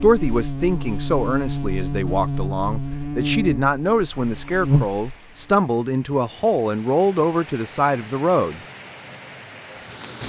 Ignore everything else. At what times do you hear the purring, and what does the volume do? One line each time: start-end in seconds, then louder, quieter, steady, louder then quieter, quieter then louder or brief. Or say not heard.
not heard.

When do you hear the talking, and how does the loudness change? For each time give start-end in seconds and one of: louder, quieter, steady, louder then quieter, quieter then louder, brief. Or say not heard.
0.0-8.6 steady.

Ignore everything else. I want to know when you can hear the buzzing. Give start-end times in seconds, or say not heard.
0.0-5.6.